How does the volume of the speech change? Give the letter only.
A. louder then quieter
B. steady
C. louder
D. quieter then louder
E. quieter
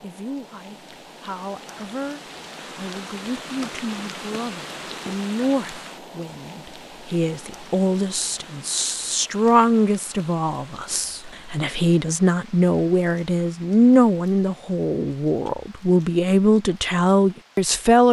C.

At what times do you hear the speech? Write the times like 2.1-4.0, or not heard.
0.0-18.0.